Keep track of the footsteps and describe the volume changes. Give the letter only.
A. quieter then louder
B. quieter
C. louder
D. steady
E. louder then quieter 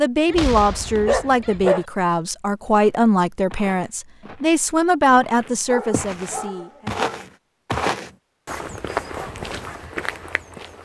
E.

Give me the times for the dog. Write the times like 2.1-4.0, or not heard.
0.3-1.9, 5.7-7.2.